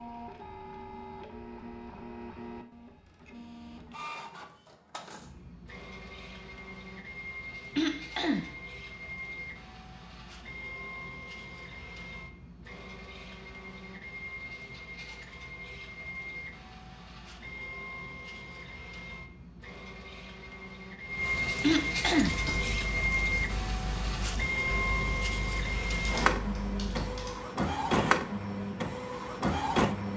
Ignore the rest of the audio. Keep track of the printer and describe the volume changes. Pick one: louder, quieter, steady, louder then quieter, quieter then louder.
louder.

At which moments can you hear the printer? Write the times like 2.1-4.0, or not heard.
0.0-30.1.